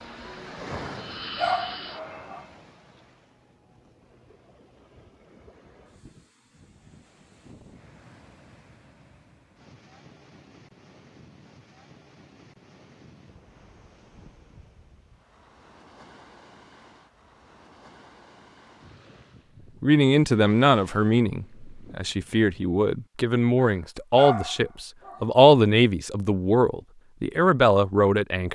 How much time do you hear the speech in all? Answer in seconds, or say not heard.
9 s.